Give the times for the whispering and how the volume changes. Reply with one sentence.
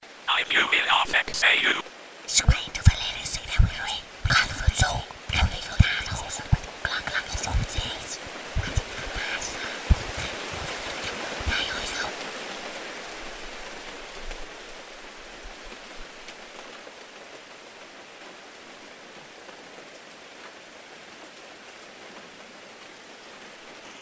The whispering can be heard from 0.2 to 12.1 s, getting quieter.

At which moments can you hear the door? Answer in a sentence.
You can't hear the door here.